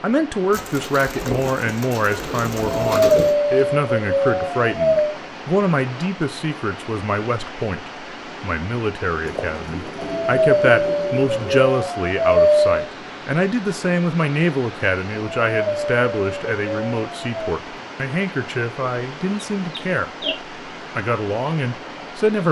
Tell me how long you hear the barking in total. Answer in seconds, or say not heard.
8 s.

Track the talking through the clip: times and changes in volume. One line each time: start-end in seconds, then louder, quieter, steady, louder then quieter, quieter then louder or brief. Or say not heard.
0.0-20.1 steady
20.9-22.4 brief.